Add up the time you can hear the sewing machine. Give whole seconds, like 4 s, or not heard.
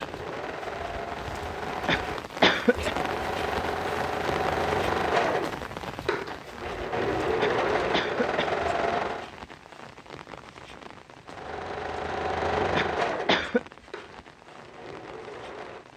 14 s.